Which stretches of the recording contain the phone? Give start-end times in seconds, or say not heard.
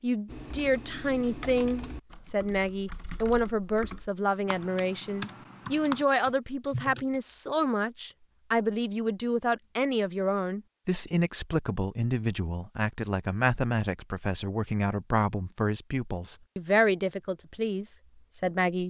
not heard.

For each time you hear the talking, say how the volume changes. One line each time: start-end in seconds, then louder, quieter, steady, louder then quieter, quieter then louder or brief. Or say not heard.
0.0-18.8 steady.